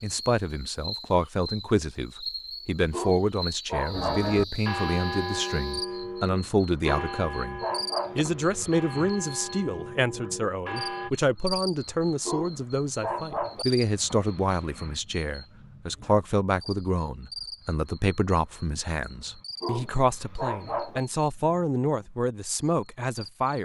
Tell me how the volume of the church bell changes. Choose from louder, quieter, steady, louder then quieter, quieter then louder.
quieter.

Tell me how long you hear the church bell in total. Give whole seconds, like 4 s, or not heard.
7 s.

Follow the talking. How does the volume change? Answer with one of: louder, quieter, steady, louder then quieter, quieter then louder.
steady.